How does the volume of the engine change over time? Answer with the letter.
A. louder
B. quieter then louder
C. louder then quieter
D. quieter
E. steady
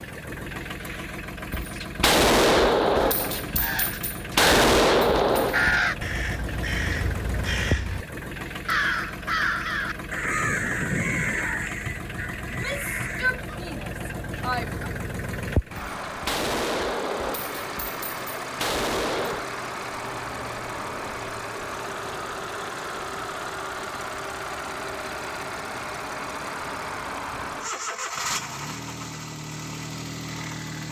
E.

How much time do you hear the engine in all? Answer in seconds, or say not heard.
31 s.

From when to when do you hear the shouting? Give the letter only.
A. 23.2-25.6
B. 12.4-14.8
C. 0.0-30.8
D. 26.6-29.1
B.